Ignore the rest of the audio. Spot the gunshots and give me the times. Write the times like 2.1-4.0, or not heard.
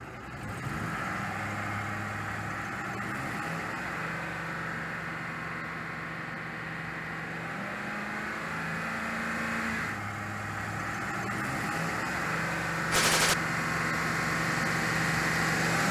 12.9-13.3.